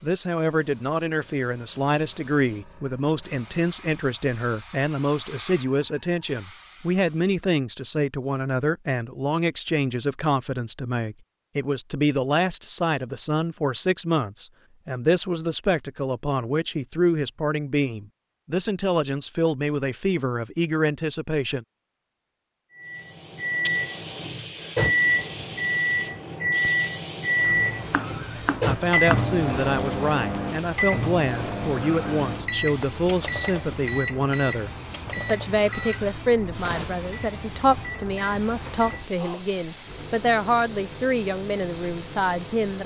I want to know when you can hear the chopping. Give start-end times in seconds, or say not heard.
27.4-29.2.